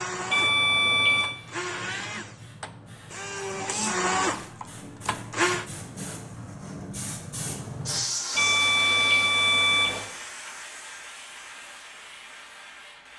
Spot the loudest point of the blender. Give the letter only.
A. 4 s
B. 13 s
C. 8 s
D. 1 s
A.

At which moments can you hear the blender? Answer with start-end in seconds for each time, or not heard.
0.0-5.7.